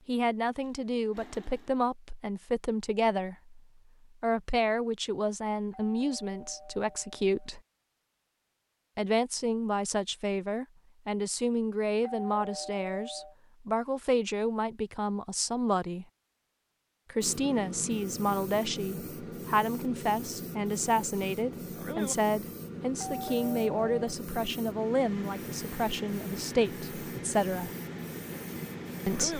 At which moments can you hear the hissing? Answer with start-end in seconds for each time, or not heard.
17.2-29.3.